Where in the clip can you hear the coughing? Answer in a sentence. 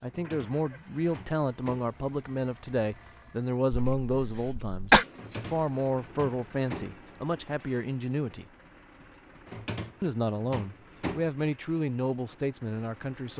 The coughing can be heard from 3.8 to 5.0 s.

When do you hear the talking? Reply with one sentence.
The talking can be heard from 0.0 to 8.4 s and from 10.0 to 13.3 s.